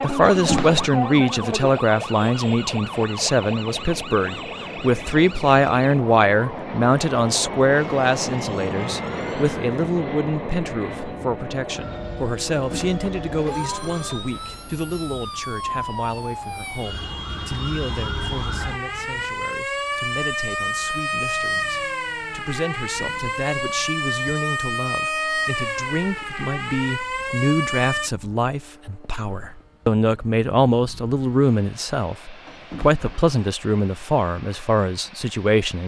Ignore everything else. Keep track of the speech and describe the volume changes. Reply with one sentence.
The loudness of the speech goes down, then up.